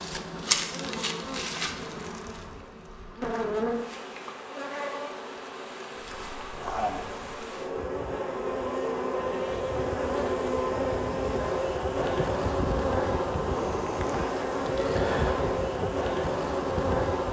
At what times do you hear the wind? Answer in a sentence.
You can hear the wind from 6.0 to 17.2 s.